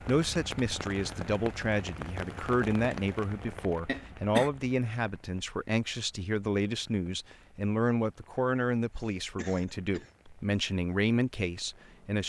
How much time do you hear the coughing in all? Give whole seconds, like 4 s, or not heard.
2 s.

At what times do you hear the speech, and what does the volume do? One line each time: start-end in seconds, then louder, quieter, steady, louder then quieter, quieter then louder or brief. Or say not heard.
0.1-12.2 steady.